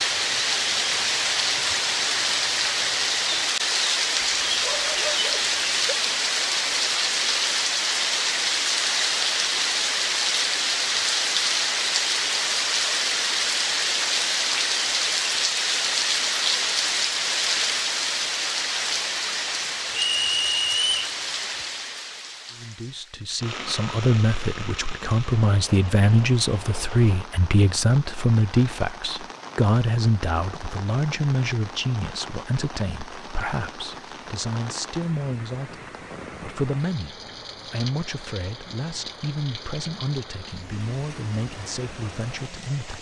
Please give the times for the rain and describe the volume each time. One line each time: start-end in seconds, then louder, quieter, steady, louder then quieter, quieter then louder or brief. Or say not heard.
0.0-42.9 quieter.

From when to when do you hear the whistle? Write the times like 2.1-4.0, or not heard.
19.9-21.1.